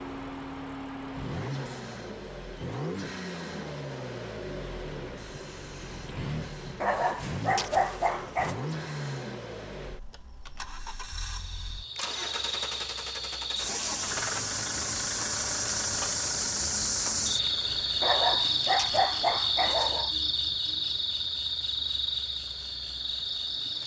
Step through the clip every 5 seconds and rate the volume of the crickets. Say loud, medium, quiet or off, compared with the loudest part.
off, off, medium, loud, loud.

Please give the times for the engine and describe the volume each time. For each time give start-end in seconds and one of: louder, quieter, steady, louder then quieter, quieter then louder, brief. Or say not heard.
0.0-23.8 quieter.